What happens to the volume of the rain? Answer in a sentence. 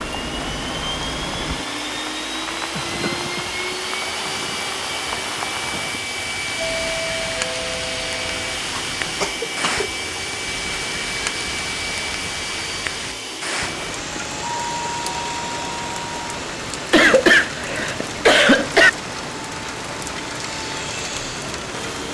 The volume of the rain stays about the same.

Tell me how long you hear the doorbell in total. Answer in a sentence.
The doorbell can be heard for 4 seconds in total.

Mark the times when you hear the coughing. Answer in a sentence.
You can hear the coughing from 2.8 to 3.5 s, from 8.8 to 9.9 s and from 16.9 to 18.9 s.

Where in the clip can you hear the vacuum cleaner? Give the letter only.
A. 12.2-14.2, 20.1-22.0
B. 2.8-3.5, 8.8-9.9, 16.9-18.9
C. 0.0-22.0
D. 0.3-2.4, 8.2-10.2
C.